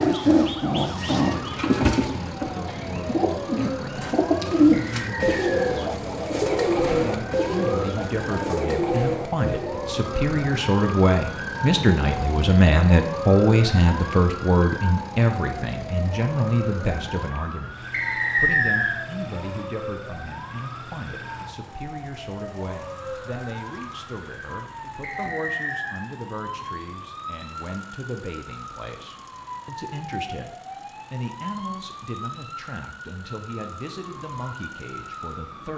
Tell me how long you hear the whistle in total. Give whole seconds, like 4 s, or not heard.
3 s.